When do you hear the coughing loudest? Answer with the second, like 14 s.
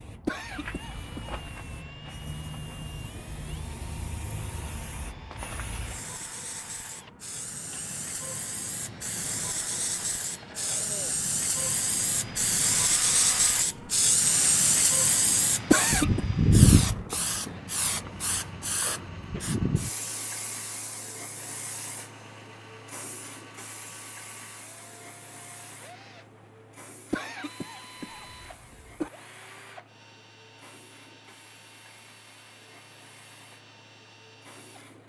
16 s.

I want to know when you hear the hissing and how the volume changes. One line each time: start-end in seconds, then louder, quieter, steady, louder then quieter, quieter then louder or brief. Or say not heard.
0.0-35.0 louder then quieter.